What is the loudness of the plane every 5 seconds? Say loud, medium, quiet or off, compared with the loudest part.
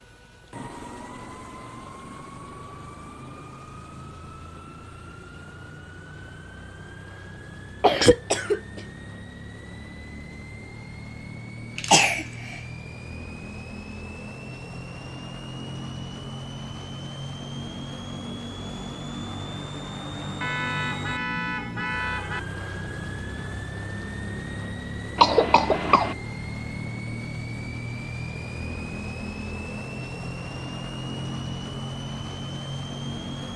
medium, medium, medium, loud, loud, loud, loud.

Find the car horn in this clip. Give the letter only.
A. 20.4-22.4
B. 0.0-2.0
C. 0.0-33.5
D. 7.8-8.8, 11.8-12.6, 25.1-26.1
A.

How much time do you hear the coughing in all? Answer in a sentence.
The coughing can be heard for 3 seconds in total.